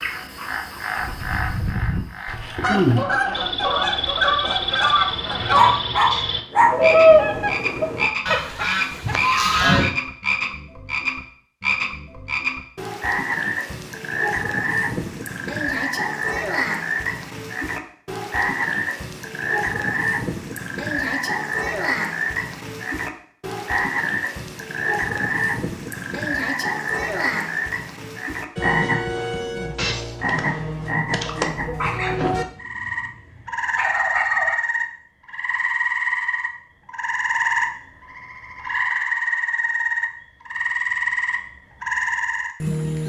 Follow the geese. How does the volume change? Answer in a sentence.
The loudness of the geese goes up, then down.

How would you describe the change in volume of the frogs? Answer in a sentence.
The volume of the frogs stays about the same.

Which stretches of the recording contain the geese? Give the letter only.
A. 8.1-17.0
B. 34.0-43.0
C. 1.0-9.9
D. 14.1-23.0
C.